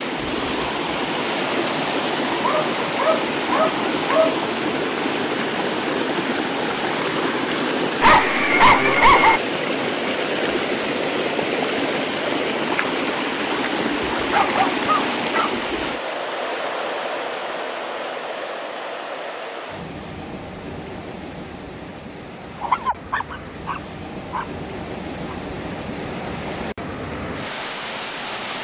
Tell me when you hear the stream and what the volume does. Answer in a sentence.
You can hear the stream from 0.0 to 28.6 s, getting quieter.